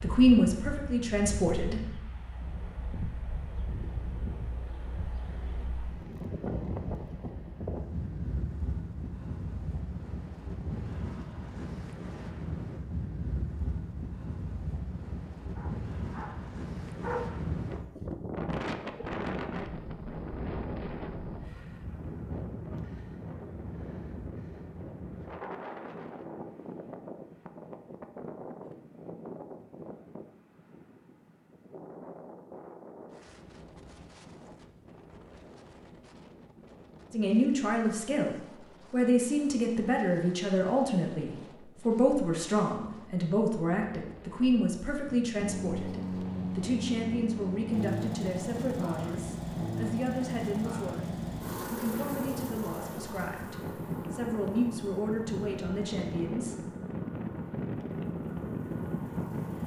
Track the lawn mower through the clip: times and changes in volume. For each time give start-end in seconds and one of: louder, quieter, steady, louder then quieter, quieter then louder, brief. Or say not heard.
45.4-59.6 quieter.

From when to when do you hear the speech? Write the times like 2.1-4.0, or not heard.
0.0-1.8, 37.1-56.5.